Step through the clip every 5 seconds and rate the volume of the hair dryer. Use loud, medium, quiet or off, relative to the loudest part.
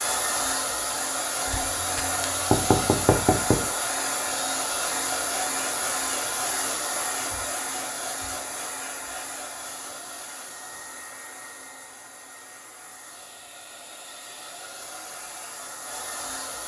loud, loud, quiet, medium.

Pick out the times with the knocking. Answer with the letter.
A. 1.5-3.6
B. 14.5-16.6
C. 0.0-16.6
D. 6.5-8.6
A.